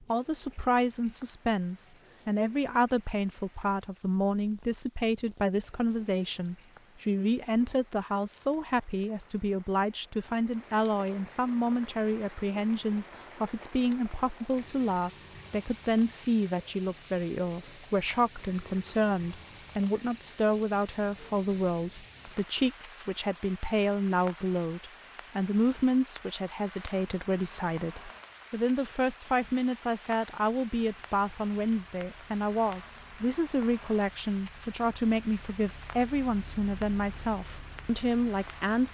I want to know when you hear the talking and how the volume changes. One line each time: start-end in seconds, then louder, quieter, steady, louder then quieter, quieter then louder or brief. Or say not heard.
0.1-38.8 steady.